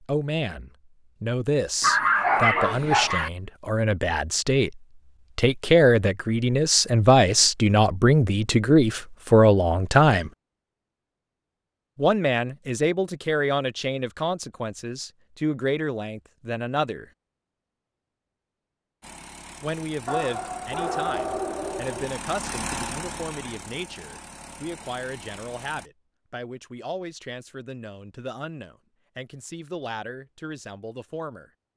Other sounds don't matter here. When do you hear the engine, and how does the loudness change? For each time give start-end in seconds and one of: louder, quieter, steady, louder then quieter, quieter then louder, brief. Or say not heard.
19.0-25.9 louder then quieter.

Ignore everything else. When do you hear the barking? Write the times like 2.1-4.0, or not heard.
1.8-3.3, 20.1-22.1.